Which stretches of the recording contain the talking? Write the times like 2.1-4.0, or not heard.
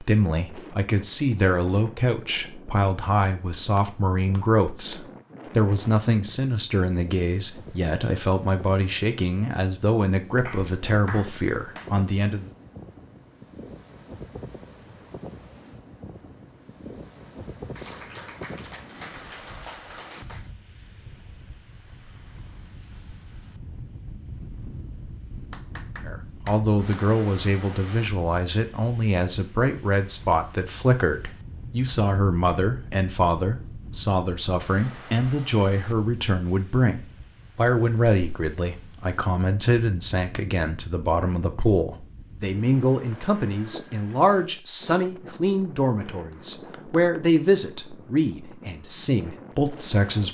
0.0-12.5, 26.1-50.2.